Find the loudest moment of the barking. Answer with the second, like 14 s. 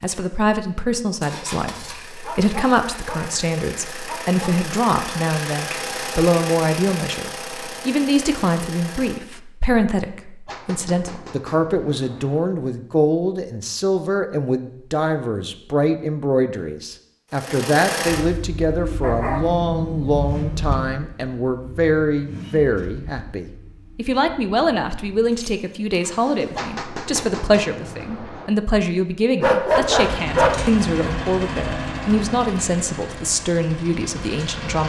30 s.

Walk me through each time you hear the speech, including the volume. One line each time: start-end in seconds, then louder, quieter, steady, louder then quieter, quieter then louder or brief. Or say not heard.
0.0-34.8 steady.